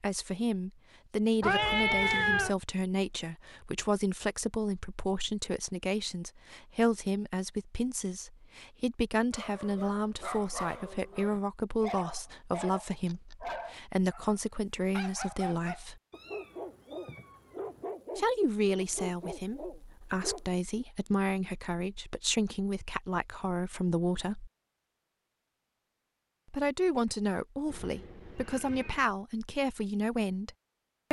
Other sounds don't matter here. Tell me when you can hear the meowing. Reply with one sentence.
The meowing can be heard from 1.4 to 2.5 s, from 16.1 to 17.9 s and from 27.6 to 29.1 s.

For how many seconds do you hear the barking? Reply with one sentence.
You can hear the barking for 11 seconds altogether.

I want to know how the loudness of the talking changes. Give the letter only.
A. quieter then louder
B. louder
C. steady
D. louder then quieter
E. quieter
C.